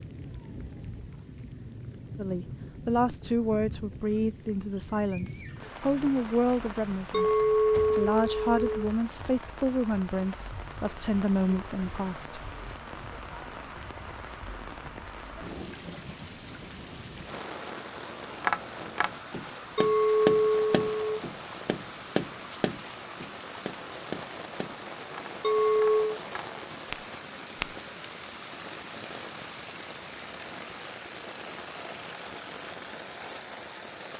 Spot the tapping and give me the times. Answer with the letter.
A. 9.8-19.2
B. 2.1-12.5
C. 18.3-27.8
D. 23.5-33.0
C.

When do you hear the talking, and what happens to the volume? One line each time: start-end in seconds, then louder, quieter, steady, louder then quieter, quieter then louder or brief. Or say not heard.
2.1-12.5 steady.